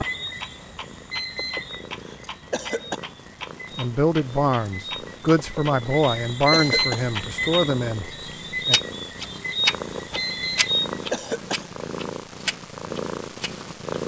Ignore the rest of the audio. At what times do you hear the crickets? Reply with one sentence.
You can hear the crickets from 0.0 to 11.2 s.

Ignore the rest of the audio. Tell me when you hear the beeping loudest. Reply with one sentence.
The volume of the beeping peaks at 7 seconds.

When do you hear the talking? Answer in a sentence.
You can hear the talking from 3.8 to 8.8 s.